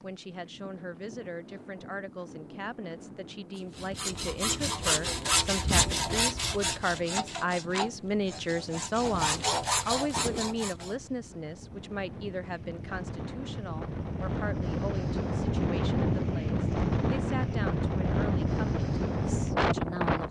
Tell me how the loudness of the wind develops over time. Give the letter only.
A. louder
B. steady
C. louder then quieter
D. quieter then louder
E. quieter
A.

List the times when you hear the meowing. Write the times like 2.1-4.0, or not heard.
not heard.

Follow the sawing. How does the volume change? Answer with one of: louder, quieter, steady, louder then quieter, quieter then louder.
quieter then louder.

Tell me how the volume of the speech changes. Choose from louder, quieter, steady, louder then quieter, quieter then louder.
louder then quieter.